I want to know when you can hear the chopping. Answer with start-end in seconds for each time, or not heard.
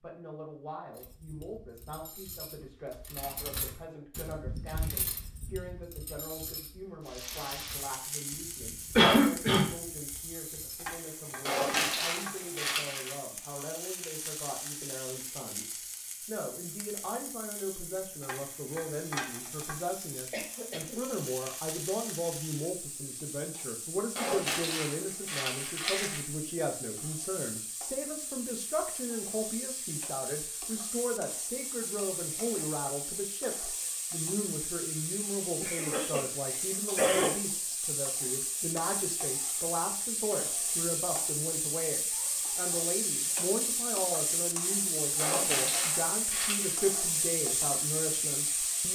not heard.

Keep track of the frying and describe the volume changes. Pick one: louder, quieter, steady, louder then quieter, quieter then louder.
louder.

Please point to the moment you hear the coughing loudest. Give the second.
9 s.